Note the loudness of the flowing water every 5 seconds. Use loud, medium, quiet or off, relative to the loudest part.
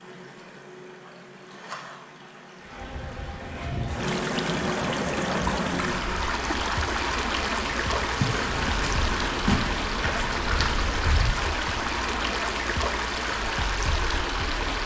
medium, loud, loud.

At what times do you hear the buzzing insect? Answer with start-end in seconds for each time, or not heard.
2.6-14.8.